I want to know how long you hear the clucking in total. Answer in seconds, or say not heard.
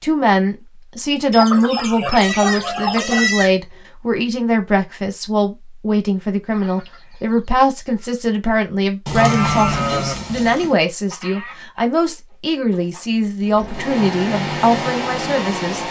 6 s.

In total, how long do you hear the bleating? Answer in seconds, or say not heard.
3 s.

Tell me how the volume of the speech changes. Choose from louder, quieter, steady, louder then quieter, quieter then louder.
steady.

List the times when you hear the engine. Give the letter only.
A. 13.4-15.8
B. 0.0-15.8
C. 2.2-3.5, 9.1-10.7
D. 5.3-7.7
A.